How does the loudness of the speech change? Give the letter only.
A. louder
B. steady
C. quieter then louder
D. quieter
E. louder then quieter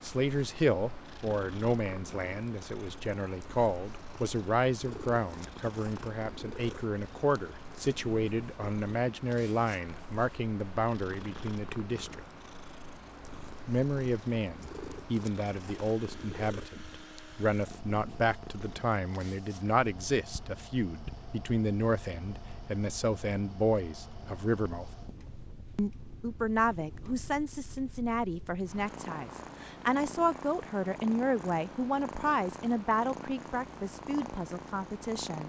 B.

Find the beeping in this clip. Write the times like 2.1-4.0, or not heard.
not heard.